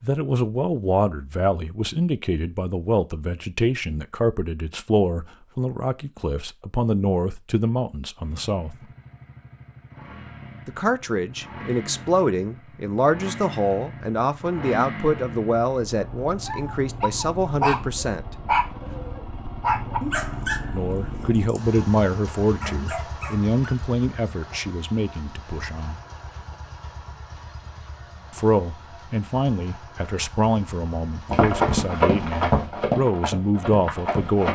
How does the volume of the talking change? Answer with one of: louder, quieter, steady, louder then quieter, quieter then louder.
steady.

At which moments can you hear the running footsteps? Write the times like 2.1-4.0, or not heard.
31.2-34.5.